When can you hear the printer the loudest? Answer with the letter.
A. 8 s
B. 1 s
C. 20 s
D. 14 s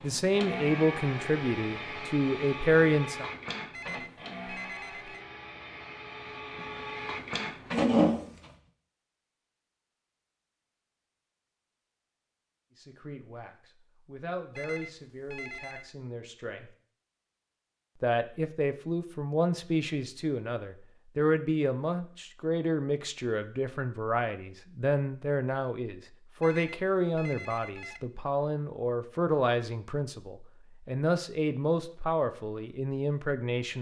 A.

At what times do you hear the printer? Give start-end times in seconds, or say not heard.
0.0-8.5.